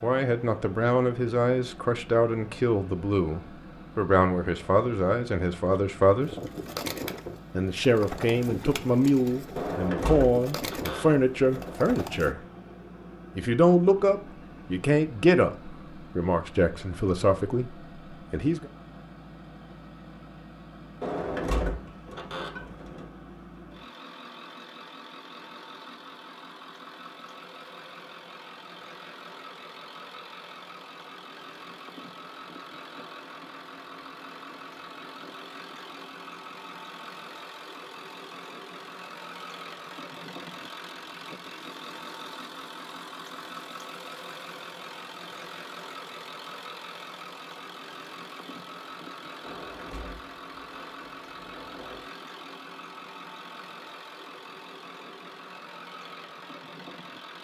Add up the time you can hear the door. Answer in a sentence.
The door can be heard for 7 seconds in total.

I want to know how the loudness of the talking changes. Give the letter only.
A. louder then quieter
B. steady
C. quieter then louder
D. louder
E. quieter
B.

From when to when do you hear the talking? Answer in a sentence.
The talking can be heard from 0.0 to 6.3 s, from 7.5 to 12.4 s and from 13.3 to 18.7 s.